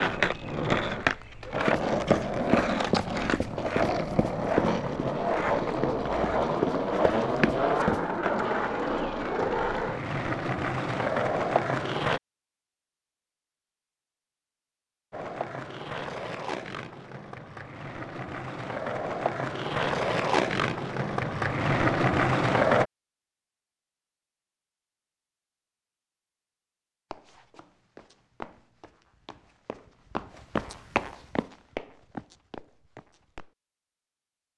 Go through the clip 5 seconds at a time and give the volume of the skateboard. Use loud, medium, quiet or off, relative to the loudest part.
loud, loud, loud, medium, loud, off, off.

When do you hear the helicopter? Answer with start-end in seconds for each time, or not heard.
not heard.